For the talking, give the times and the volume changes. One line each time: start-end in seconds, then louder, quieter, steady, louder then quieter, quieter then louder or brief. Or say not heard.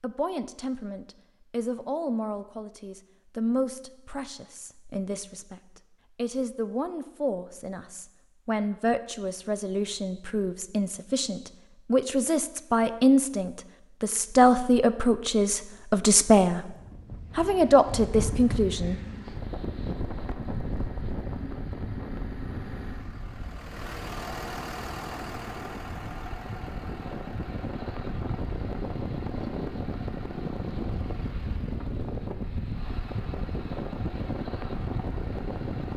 0.0-16.6 louder
17.4-19.0 brief.